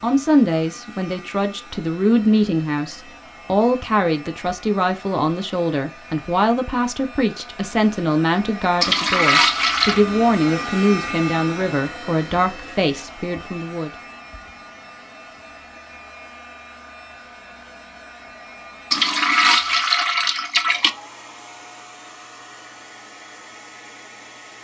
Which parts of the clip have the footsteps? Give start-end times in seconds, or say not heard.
not heard.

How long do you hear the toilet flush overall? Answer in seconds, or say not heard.
3 s.